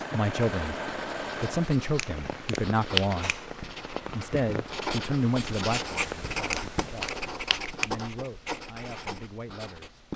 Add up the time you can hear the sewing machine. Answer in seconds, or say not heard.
2 s.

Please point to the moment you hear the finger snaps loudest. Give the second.
3 s.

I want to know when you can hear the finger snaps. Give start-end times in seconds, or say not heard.
1.8-3.1, 6.3-8.0.